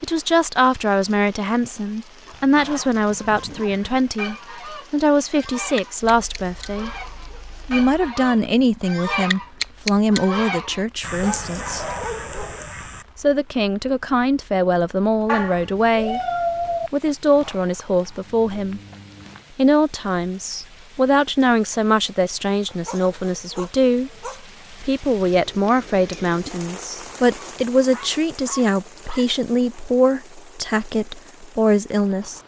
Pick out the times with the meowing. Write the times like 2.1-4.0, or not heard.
15.2-16.9.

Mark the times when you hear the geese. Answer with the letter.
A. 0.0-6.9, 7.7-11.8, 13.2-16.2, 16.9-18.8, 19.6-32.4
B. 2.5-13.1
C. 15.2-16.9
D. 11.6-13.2
B.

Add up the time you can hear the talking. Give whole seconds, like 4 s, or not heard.
29 s.